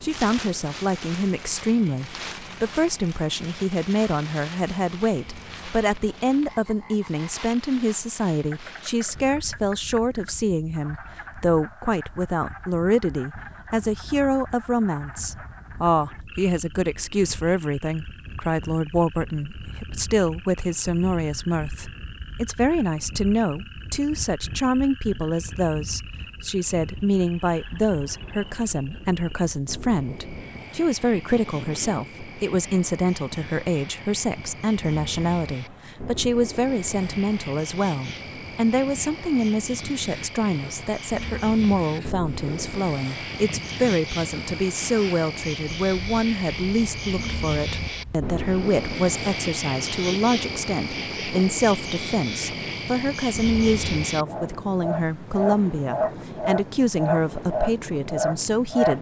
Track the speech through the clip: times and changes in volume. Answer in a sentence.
You can hear the speech from 0.0 to 58.9 s, at a steady volume.